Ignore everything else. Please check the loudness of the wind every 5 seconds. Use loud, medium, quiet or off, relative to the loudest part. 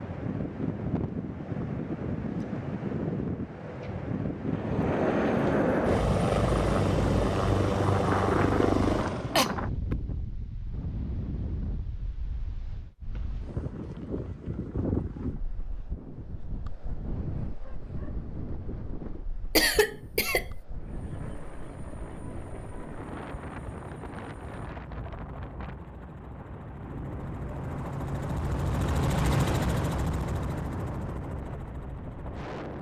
loud, loud, medium, medium, medium, quiet, medium.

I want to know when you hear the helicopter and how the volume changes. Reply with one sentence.
You can hear the helicopter from 4.5 to 9.5 s, at a steady volume; and from 20.7 to 32.7 s, getting louder then quieter.